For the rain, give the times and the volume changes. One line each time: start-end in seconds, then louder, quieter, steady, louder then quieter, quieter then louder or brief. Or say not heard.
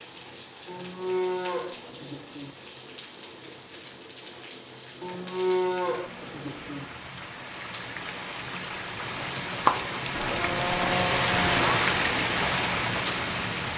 0.0-13.7 louder.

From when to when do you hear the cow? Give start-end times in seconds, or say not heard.
0.7-2.5, 5.0-6.8, 10.1-11.9.